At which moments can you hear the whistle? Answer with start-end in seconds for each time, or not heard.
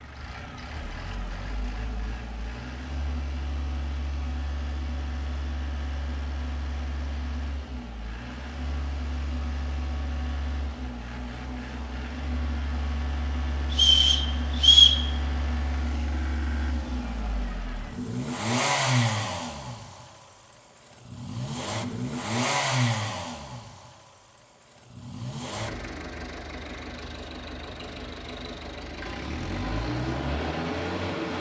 13.7-15.0.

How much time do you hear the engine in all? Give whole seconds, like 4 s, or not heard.
31 s.